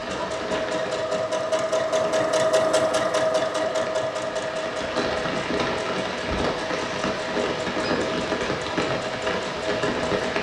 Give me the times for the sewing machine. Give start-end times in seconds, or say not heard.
0.0-10.3.